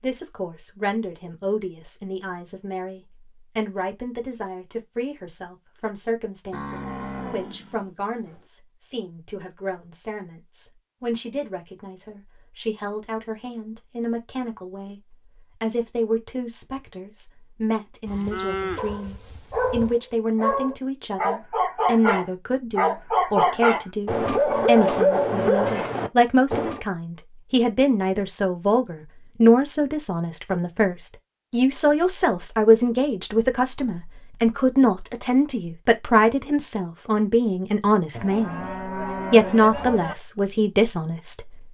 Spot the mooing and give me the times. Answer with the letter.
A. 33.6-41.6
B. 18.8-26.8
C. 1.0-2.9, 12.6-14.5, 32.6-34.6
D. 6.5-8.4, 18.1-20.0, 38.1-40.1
D.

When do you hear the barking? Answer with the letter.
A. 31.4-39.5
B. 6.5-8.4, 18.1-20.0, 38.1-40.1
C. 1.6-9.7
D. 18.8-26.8
D.